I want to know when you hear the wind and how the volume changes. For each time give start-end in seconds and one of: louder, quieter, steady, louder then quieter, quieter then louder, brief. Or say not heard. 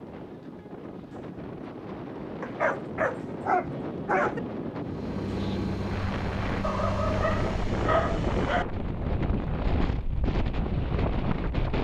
0.0-11.7 louder.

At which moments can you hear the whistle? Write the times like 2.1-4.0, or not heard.
not heard.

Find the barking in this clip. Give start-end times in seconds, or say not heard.
2.4-4.4, 6.6-8.7.